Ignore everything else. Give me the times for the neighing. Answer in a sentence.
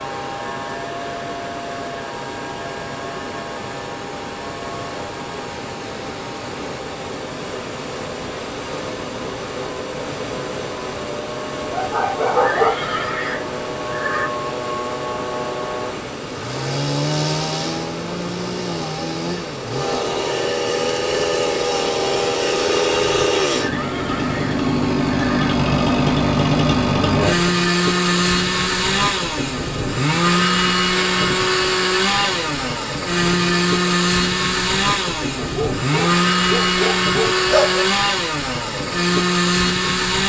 You can hear the neighing from 12.4 to 14.3 s and from 23.6 to 25.6 s.